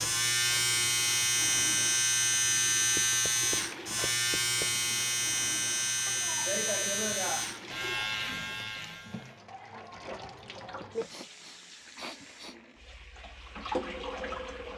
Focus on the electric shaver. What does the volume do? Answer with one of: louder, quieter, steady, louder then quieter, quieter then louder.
quieter.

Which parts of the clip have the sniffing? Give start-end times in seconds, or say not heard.
0.5-1.2, 6.0-8.1, 11.1-12.6.